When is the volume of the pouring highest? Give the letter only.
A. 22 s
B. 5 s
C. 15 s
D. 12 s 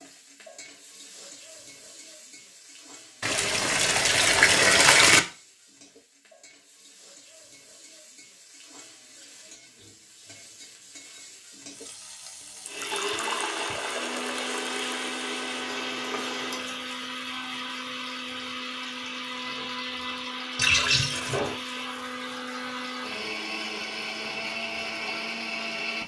B.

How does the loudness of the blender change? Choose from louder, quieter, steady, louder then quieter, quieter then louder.
steady.